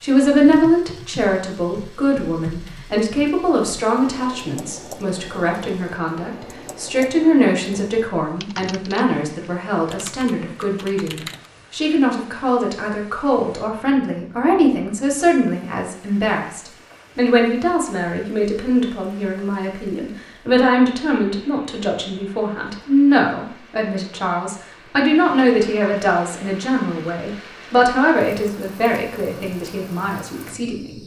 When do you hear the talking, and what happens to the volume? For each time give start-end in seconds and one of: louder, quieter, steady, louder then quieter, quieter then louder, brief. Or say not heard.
0.0-30.9 steady.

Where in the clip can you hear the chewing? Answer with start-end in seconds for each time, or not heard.
not heard.